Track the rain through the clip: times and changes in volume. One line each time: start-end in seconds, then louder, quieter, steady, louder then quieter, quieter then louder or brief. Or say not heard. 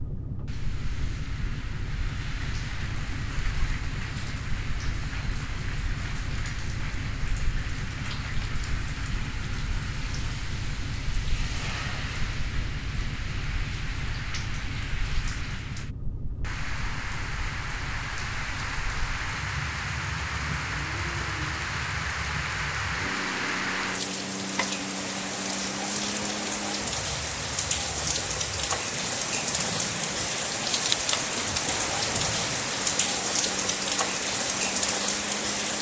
0.2-35.7 louder.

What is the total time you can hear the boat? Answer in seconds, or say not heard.
36 s.